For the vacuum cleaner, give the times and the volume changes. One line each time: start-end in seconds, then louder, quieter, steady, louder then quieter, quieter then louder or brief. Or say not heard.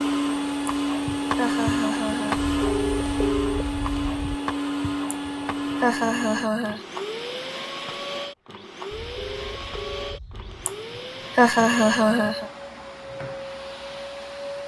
0.0-14.6 quieter.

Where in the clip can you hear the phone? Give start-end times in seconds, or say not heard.
2.4-4.3, 8.9-10.7.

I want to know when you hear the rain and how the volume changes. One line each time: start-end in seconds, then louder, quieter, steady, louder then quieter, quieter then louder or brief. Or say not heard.
not heard.